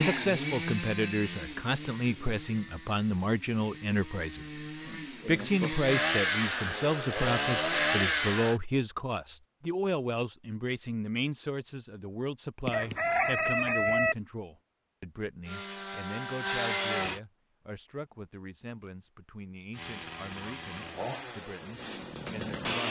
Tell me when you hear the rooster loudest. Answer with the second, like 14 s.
14 s.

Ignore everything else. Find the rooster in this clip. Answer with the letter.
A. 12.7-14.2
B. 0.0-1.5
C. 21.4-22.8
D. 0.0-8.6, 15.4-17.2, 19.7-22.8
A.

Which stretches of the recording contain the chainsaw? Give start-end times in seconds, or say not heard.
0.0-8.6, 15.4-17.2, 19.7-22.8.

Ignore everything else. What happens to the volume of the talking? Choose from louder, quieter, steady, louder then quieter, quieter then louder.
quieter.